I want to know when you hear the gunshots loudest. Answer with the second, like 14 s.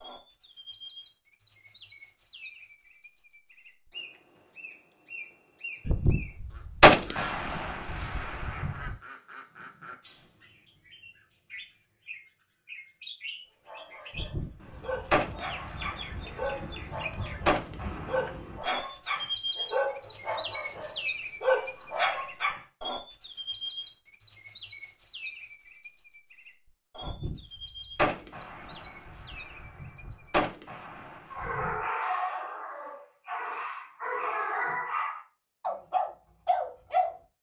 7 s.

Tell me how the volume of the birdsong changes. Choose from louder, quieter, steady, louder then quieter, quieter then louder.
louder then quieter.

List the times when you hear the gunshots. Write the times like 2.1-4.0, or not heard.
5.8-8.9, 14.1-18.3, 27.0-31.8.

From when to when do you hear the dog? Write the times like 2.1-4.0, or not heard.
13.7-22.6, 31.3-37.3.